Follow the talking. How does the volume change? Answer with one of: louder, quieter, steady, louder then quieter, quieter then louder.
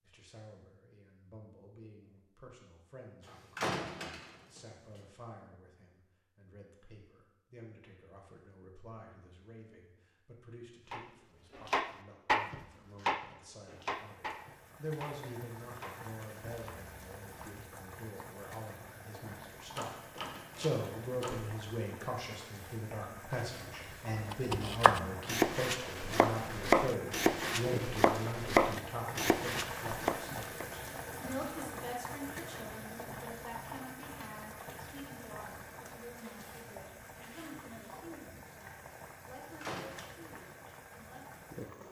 louder then quieter.